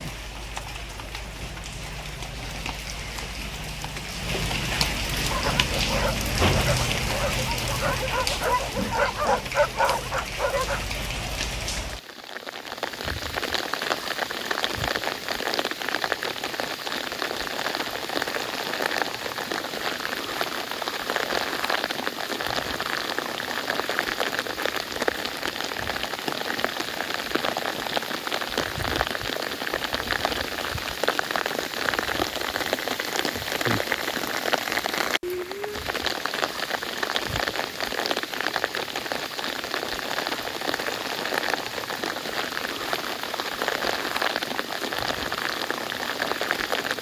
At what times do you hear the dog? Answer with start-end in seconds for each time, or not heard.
5.2-10.8.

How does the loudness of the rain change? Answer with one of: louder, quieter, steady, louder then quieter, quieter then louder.
steady.